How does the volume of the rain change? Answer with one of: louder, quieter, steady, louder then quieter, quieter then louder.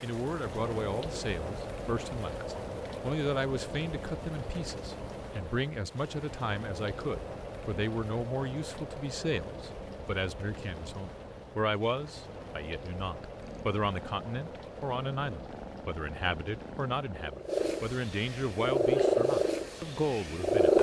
quieter.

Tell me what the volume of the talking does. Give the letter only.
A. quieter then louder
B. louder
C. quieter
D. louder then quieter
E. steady
E.